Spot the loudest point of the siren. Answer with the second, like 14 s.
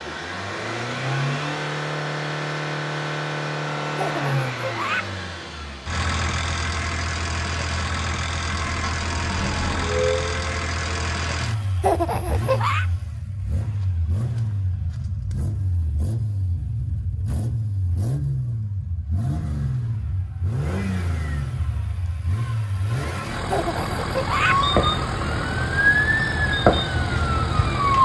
26 s.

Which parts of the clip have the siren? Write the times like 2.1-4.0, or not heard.
8.4-10.8, 24.4-28.0.